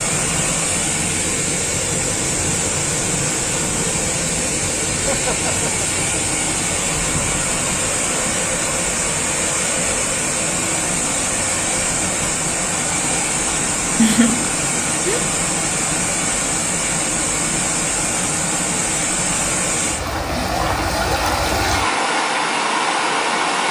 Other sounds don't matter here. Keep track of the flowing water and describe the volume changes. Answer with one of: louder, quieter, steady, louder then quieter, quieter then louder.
steady.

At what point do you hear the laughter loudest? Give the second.
14 s.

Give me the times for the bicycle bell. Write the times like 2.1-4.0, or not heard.
not heard.